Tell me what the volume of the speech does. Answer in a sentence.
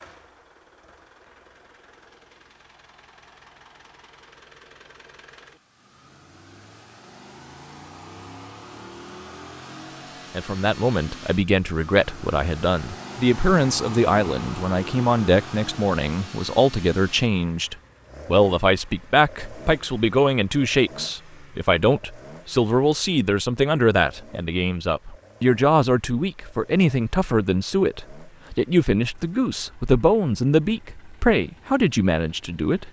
The volume of the speech stays about the same.